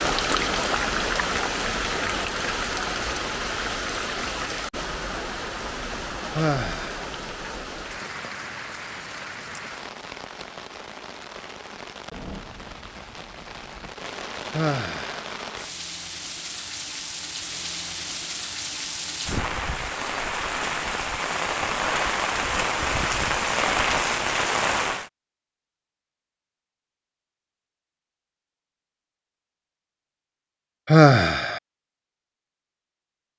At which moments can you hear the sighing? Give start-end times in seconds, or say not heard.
6.3-7.0, 14.5-15.2, 30.9-31.6.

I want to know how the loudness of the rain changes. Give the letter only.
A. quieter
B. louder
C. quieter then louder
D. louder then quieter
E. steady
C.